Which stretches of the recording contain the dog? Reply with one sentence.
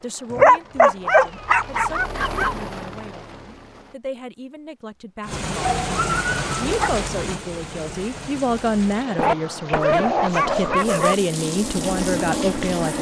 The dog can be heard from 0.3 to 2.5 s, from 5.6 to 6.9 s and from 9.2 to 11.2 s.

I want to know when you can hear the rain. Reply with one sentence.
You can hear the rain from 5.2 to 12.9 s.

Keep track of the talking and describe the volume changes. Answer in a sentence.
The volume of the talking goes up.